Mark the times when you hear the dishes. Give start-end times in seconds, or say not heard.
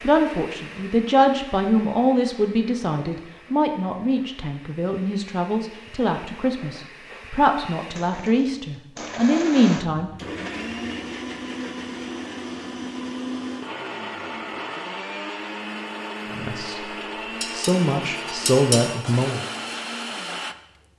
17.4-18.9.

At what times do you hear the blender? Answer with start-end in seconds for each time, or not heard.
0.0-20.9.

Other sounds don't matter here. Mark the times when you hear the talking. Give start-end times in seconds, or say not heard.
0.0-10.1, 16.3-19.4.